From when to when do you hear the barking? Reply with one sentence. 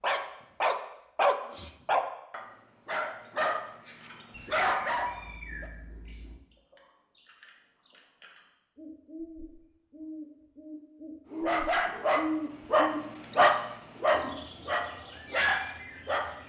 You can hear the barking from 0.0 to 5.7 s and from 11.3 to 16.4 s.